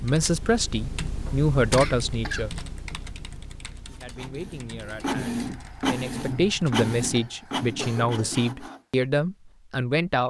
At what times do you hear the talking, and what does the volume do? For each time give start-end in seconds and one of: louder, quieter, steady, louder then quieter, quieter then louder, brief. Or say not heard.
0.0-2.5 brief
3.9-10.2 louder.